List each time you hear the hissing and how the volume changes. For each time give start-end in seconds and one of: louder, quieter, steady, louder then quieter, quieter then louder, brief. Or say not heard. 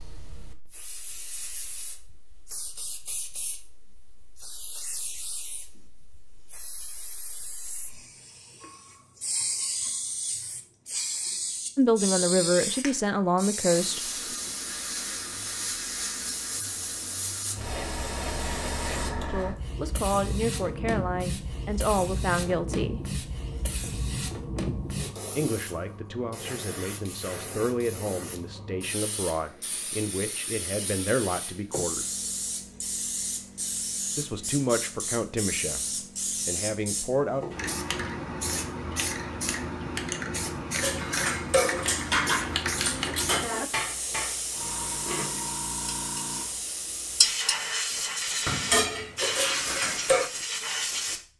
0.0-51.3 louder.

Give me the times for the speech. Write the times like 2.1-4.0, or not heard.
11.8-14.0, 19.3-23.0, 25.4-32.0, 34.1-37.5.